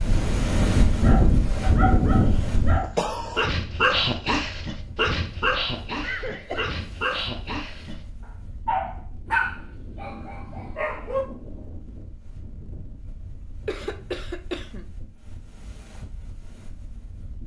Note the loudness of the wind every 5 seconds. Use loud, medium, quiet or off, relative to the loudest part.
loud, quiet, quiet, quiet.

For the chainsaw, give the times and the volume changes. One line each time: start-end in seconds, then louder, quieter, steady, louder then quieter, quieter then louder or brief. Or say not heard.
not heard.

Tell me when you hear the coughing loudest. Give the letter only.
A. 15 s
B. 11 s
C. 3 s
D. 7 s
C.